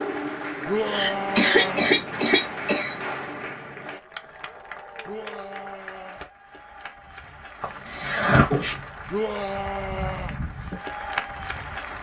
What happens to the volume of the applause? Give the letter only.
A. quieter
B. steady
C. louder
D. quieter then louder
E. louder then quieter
D.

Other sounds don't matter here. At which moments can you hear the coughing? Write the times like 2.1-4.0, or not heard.
0.8-3.0, 7.6-8.8.